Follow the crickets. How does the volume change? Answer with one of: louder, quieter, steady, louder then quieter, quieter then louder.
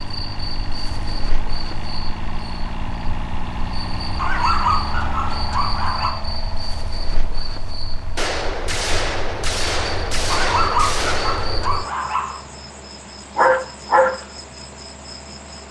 louder.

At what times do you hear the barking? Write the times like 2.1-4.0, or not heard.
4.2-6.2, 10.3-12.4.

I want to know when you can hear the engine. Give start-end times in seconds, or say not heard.
0.0-15.6.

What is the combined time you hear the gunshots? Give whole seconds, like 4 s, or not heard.
4 s.